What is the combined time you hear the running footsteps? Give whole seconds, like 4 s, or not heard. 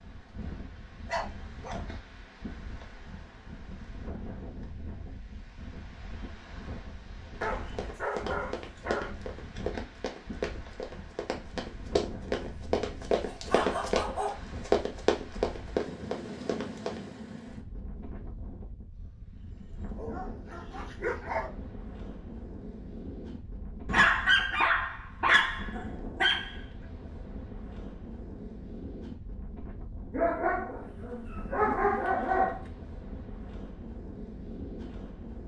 10 s.